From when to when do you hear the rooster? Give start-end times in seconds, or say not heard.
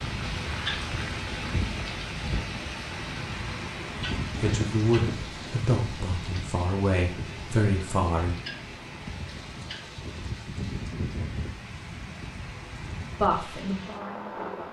not heard.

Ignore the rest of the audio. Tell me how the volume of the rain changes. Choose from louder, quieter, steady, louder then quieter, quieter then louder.
quieter.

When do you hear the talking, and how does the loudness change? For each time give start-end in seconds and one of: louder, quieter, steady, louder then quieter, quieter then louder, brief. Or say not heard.
4.3-8.3 quieter then louder
13.2-14.6 brief.